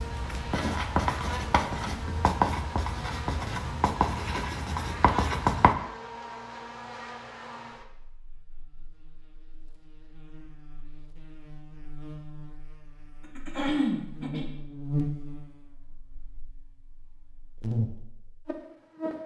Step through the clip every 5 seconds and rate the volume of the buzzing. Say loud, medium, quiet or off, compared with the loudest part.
loud, medium, loud, loud.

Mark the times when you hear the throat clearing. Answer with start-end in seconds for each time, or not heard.
13.3-14.5.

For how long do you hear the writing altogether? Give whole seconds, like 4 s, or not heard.
6 s.